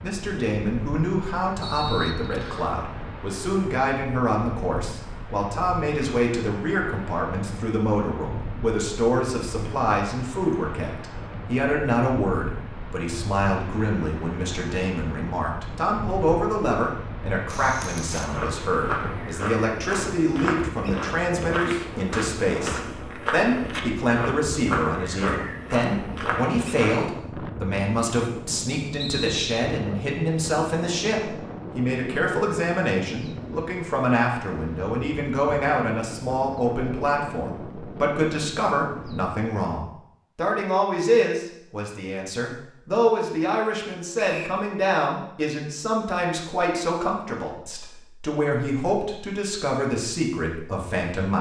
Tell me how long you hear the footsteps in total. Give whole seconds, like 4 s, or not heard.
10 s.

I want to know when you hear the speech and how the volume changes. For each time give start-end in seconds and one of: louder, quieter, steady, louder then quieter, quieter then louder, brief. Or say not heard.
0.0-51.3 steady.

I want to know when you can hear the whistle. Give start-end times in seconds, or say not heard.
1.6-2.7, 29.0-29.7, 44.1-44.6.